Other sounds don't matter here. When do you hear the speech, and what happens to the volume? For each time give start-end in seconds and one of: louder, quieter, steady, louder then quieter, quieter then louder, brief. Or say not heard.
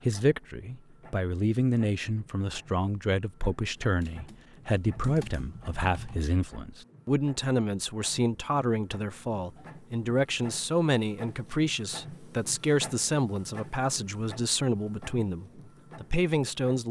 0.0-16.8 steady.